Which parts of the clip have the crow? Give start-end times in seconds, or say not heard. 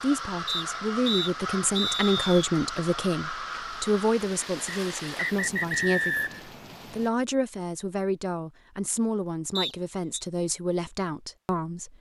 0.0-4.2.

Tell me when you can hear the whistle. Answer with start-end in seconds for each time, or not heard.
0.5-2.4, 4.7-6.5, 9.6-10.2.